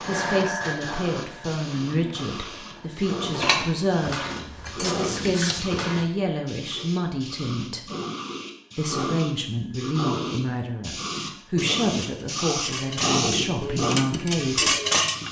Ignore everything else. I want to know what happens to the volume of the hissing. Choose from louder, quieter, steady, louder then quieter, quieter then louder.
louder.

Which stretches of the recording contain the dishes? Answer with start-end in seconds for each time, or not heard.
1.9-6.0, 11.6-15.2.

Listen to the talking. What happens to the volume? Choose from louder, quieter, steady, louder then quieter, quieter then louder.
steady.